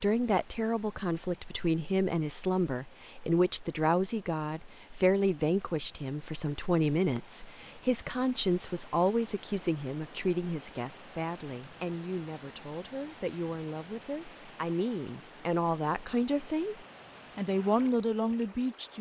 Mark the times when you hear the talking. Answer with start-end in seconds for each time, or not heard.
0.0-18.9.